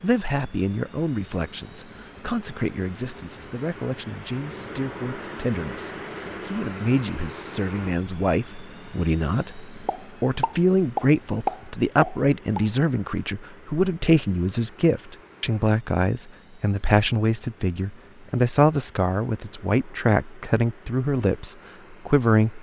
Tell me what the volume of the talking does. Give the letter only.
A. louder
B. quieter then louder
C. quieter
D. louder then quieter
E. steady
A.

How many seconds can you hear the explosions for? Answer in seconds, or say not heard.
3 s.